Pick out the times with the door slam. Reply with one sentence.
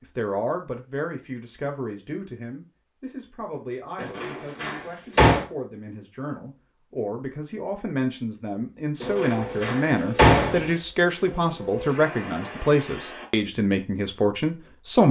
You can hear the door slam from 4.0 to 5.5 s and from 9.0 to 10.7 s.